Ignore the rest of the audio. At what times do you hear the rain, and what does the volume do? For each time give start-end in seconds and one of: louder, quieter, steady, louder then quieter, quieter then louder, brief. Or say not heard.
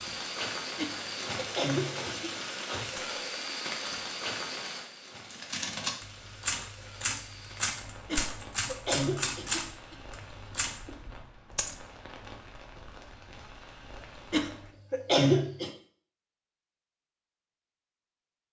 0.0-14.8 quieter.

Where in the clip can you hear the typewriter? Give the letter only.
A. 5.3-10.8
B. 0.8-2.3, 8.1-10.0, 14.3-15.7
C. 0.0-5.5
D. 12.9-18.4
A.